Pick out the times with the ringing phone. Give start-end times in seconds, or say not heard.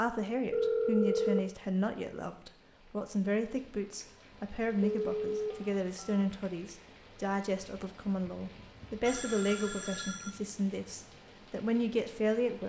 0.5-1.5, 4.3-6.2, 9.0-10.3.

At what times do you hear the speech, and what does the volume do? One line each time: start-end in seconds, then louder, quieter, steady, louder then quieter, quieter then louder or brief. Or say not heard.
0.0-12.6 steady.